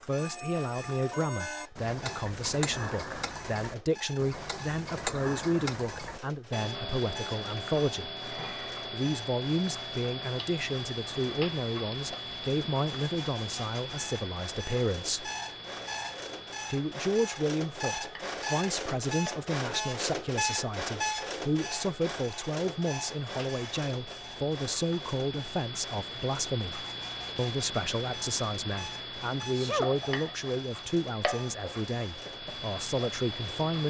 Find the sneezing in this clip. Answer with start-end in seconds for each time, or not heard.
29.3-29.9.